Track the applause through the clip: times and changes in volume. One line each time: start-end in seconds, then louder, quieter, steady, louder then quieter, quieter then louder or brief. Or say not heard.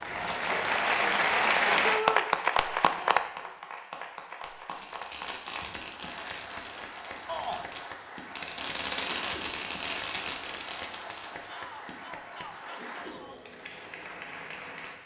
0.0-15.0 quieter.